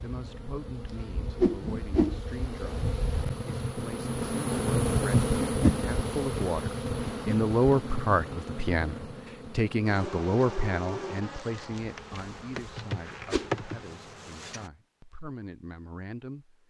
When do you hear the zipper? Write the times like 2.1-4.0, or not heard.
not heard.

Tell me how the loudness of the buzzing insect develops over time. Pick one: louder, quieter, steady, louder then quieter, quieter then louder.
louder then quieter.